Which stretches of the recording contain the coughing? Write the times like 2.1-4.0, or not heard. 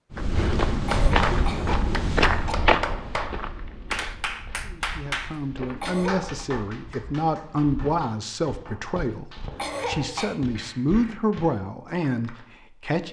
0.8-2.5, 5.8-6.5, 9.6-10.3.